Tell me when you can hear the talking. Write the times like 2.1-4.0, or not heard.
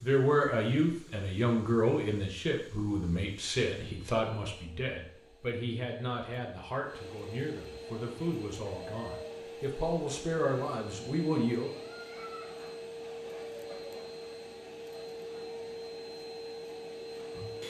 0.0-11.7.